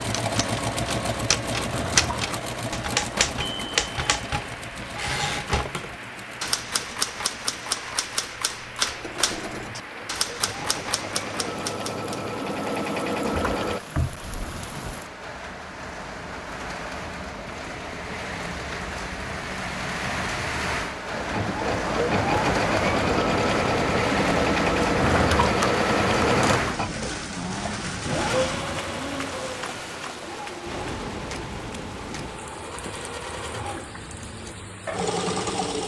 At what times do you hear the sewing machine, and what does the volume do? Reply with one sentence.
The sewing machine can be heard from 0.0 to 13.8 s, getting quieter then louder; and from 21.1 to 35.8 s, getting quieter then louder.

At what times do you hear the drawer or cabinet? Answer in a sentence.
The drawer or cabinet can be heard from 1.6 to 2.4 s, from 13.2 to 15.0 s and from 24.9 to 26.8 s.